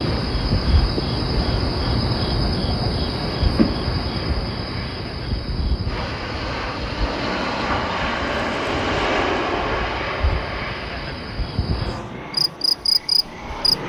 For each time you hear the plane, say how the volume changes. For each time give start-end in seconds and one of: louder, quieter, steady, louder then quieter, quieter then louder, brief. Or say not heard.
0.0-13.8 louder then quieter.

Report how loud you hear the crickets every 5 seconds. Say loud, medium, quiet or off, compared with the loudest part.
loud, medium, loud.